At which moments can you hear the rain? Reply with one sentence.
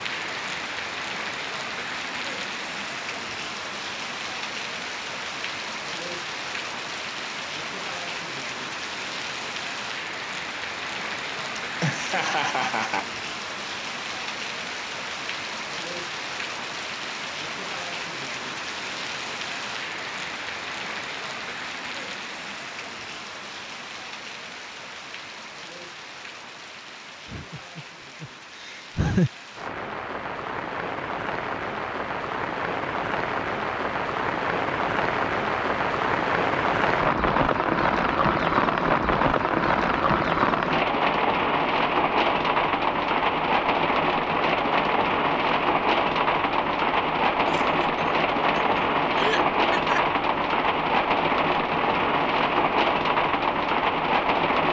You can hear the rain from 0.0 to 54.6 s.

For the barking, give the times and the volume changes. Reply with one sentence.
The barking can't be heard in this clip.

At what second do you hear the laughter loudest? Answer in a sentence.
The loudest moment of the laughter is at 29 seconds.